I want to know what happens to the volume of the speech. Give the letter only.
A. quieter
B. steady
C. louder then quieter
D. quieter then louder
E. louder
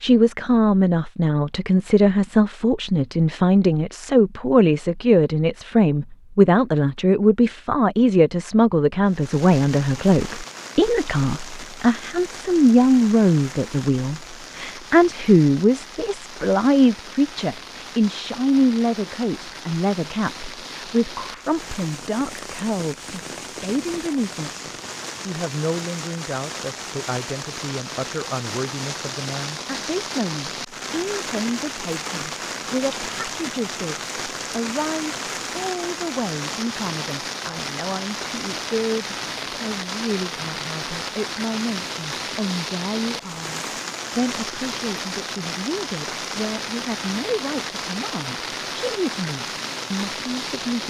A.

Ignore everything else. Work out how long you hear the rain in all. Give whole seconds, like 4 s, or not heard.
42 s.